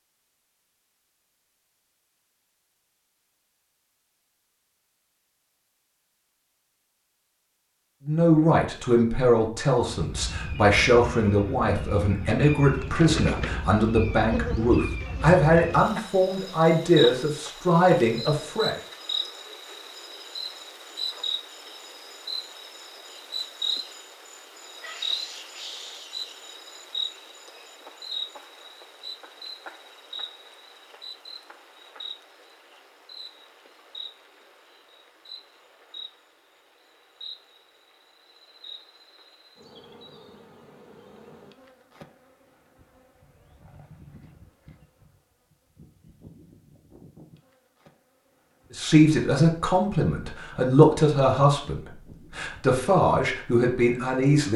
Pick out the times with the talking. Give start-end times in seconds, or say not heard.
8.1-18.8, 48.7-54.5.